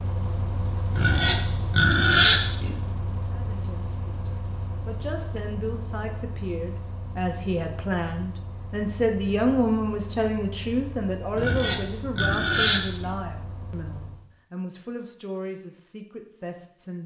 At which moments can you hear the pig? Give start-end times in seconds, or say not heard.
0.9-2.8, 11.3-13.1.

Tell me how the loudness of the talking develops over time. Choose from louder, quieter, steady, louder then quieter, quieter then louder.
louder then quieter.